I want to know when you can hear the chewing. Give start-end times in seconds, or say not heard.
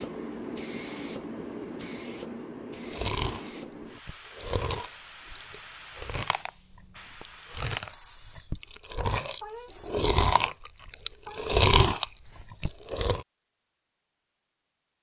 2.8-13.2.